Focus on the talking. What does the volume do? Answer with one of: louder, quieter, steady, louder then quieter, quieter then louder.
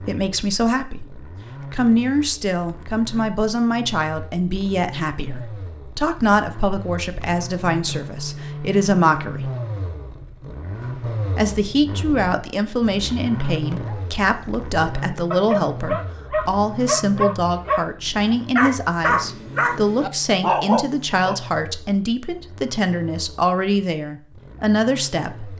steady.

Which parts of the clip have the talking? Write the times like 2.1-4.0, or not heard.
0.0-9.5, 11.3-25.5.